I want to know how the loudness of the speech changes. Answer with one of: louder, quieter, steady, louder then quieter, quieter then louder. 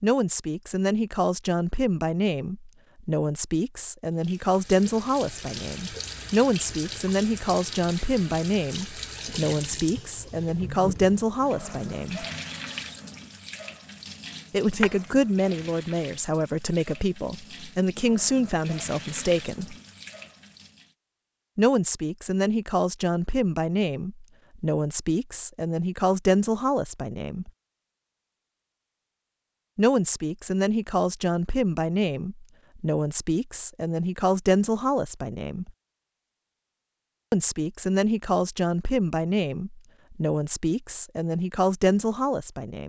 steady.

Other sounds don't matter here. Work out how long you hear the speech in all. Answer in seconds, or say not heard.
35 s.